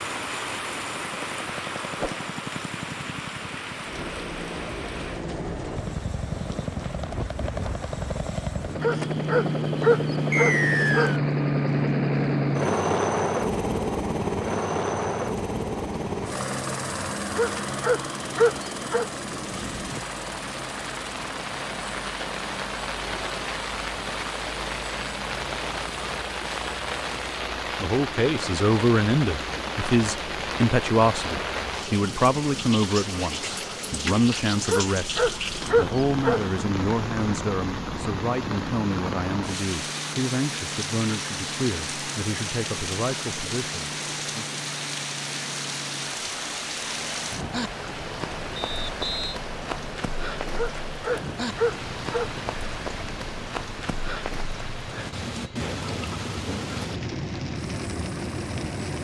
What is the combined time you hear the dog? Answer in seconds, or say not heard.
8 s.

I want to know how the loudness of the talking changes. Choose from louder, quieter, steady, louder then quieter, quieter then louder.
quieter.